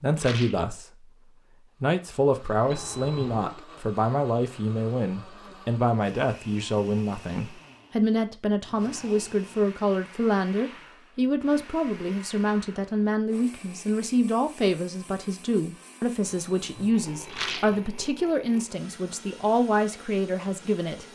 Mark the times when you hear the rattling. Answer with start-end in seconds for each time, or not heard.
0.1-0.7, 10.4-10.8, 17.2-17.8.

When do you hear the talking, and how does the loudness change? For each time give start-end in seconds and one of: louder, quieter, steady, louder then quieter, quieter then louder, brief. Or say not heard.
0.0-21.0 steady.